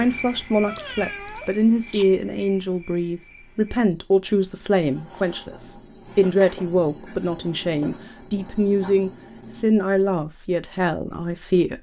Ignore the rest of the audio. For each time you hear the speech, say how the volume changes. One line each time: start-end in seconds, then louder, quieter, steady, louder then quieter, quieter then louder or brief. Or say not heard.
0.0-11.7 steady.